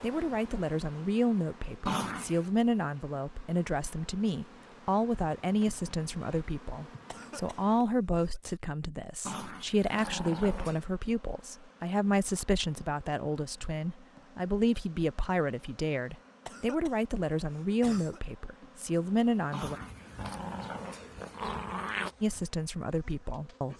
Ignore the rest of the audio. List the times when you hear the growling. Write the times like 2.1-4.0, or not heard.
1.9-2.5, 9.2-10.8, 19.5-22.1.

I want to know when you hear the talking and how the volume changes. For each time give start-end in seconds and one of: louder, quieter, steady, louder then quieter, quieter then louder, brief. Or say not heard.
0.0-19.8 steady
22.2-23.7 brief.